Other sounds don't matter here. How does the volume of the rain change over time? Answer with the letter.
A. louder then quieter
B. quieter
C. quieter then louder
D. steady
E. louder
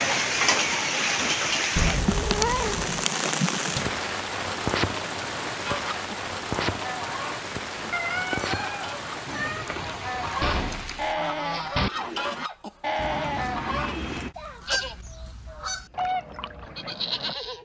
B.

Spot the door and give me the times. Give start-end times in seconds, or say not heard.
3.5-4.0, 10.4-11.9.